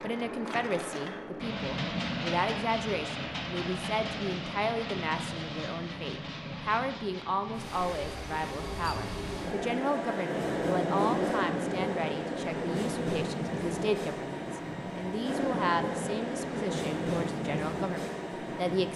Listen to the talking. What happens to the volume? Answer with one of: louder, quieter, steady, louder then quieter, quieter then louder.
steady.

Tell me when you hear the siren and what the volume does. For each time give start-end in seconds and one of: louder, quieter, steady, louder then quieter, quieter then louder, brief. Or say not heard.
not heard.